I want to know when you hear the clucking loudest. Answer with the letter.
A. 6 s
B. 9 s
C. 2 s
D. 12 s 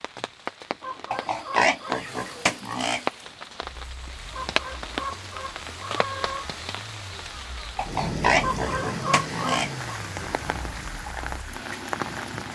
B.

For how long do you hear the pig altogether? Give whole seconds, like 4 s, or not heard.
4 s.